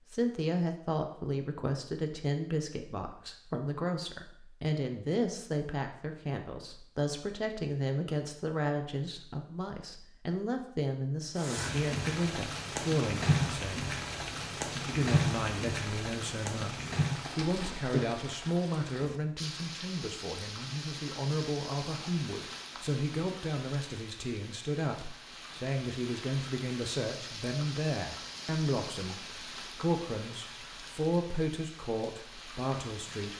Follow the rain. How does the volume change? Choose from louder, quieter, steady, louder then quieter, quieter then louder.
quieter.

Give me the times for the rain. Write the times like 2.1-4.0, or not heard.
11.3-33.3.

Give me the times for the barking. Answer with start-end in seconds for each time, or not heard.
not heard.